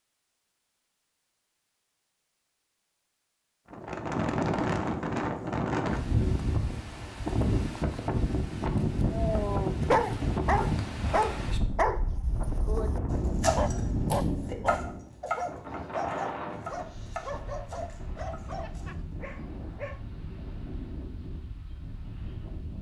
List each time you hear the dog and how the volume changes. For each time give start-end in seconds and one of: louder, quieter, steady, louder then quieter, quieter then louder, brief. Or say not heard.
9.1-20.1 quieter.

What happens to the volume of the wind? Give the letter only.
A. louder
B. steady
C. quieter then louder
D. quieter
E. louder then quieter
D.